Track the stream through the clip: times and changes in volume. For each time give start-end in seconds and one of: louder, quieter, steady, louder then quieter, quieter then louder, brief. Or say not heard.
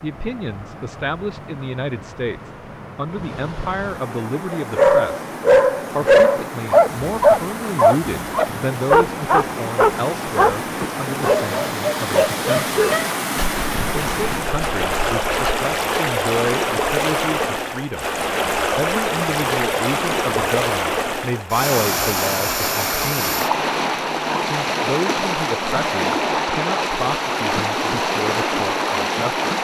0.0-29.5 louder.